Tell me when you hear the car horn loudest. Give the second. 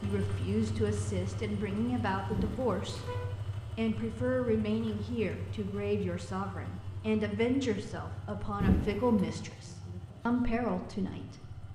9 s.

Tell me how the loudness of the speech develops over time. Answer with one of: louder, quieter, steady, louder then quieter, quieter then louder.
steady.